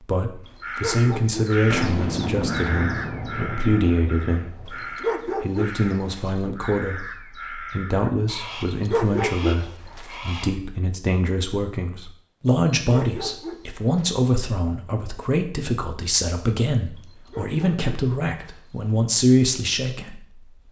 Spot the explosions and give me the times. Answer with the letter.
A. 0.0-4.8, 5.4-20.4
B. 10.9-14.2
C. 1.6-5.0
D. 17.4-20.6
C.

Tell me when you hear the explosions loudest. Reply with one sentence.
The loudest moment of the explosions is at 2 seconds.